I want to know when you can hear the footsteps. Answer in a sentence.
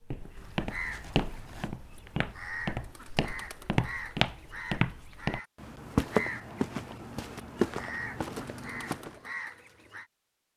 You can hear the footsteps from 0.1 to 9.2 s.